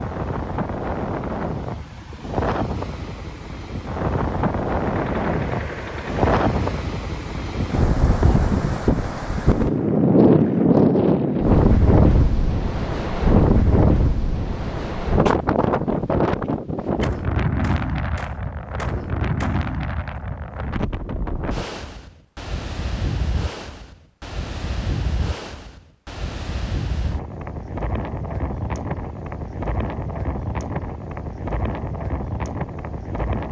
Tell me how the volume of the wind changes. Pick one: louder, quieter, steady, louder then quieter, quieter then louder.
louder then quieter.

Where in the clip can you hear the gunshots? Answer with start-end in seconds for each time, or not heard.
4.8-6.8, 17.0-19.6.